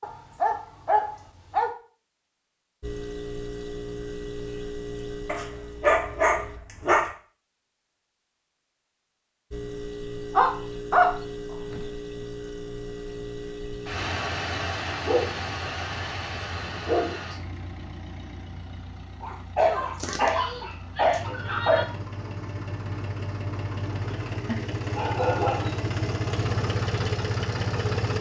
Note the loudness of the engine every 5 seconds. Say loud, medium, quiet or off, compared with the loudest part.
medium, medium, medium, medium, medium, loud.